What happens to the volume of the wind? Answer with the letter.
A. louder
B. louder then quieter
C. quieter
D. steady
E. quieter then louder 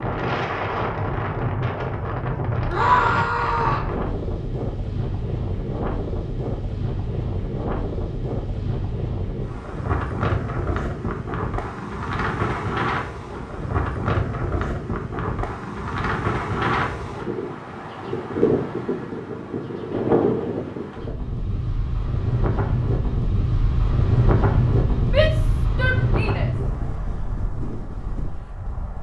D.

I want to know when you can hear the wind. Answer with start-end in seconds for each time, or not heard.
0.0-28.9.